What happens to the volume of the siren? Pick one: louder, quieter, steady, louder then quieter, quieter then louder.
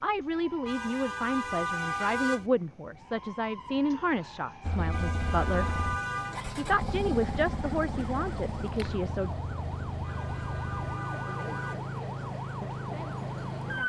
louder.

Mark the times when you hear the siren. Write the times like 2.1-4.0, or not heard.
0.0-13.8.